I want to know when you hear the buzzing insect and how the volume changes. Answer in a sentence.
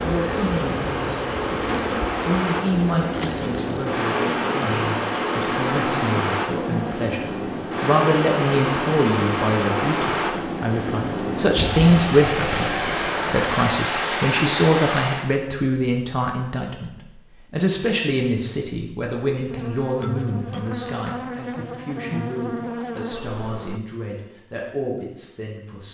The buzzing insect can be heard from 0.0 to 7.0 s, at a steady volume; and from 19.5 to 23.8 s, at a steady volume.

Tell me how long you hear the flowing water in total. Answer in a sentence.
The flowing water can be heard for 15 seconds in total.